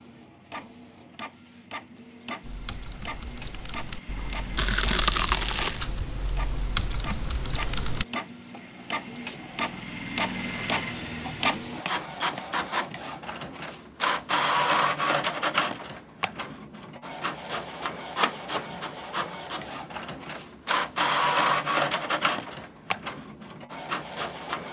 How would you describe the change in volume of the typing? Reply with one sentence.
The volume of the typing goes up.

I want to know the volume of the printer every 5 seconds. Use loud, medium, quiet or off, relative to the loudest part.
quiet, medium, loud, loud, loud.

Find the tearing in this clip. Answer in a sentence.
You can hear the tearing from 4.5 to 5.8 s.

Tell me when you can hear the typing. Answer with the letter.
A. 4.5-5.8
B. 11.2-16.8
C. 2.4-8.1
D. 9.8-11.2
C.